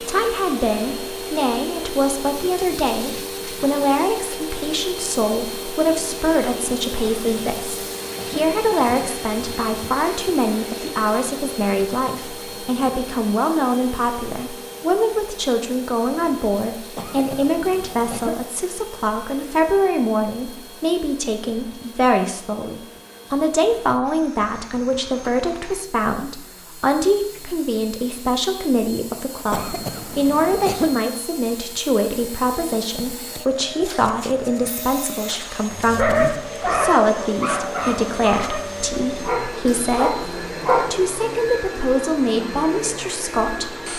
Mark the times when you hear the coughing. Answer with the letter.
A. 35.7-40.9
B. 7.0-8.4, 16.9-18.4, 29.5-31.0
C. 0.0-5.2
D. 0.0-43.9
B.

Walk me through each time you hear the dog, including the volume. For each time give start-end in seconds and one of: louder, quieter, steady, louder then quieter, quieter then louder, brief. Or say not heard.
35.7-40.9 quieter.